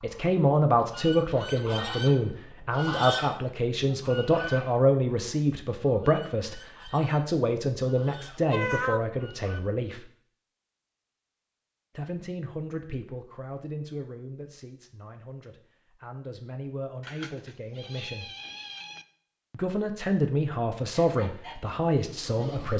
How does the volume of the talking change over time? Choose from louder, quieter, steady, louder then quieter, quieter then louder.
quieter then louder.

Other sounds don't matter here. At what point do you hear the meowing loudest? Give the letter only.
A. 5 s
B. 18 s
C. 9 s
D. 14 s
C.